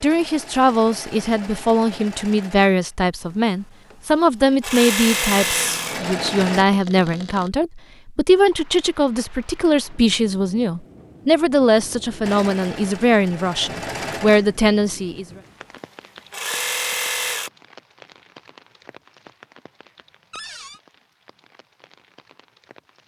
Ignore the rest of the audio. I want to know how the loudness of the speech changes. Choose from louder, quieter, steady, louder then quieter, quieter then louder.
steady.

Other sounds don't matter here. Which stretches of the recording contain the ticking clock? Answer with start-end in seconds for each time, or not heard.
not heard.